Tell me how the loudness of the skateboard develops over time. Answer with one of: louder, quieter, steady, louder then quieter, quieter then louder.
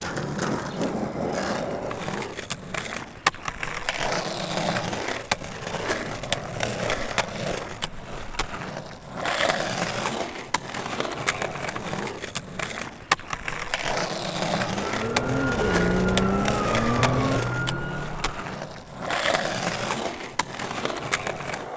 steady.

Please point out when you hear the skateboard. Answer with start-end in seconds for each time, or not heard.
0.0-21.7.